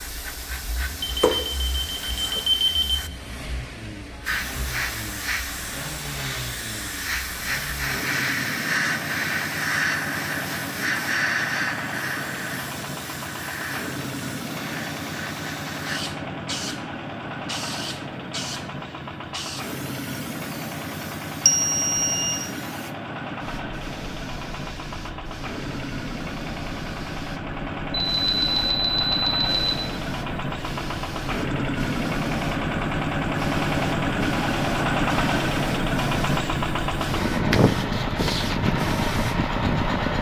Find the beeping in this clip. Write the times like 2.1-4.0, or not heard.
1.0-3.0, 21.4-22.4, 27.9-29.8.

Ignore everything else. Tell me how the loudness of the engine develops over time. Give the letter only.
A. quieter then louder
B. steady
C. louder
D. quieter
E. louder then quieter
C.